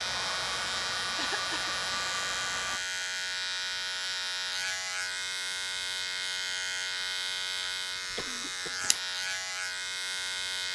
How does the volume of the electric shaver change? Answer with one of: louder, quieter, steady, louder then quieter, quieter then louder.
steady.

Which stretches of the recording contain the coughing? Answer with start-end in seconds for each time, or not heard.
1.1-1.8, 8.1-8.8.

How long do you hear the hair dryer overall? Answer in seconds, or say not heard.
3 s.